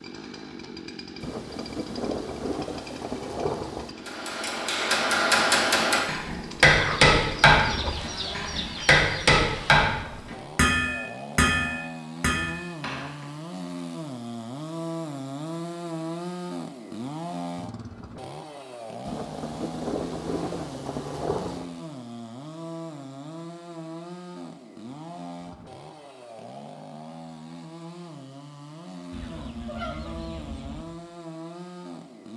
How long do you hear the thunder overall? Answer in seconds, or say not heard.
5 s.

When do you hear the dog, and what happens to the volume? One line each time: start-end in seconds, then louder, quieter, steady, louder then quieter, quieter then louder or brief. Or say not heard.
not heard.